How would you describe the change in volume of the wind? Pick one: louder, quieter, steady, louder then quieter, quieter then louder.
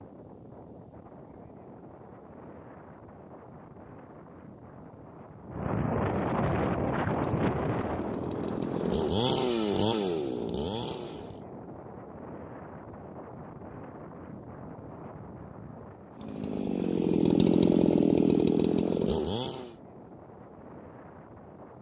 louder then quieter.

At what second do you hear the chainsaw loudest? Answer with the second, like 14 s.
18 s.